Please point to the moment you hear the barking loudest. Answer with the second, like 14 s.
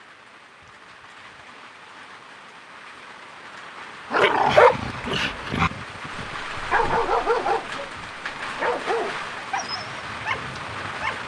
5 s.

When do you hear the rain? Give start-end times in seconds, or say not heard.
0.0-11.2.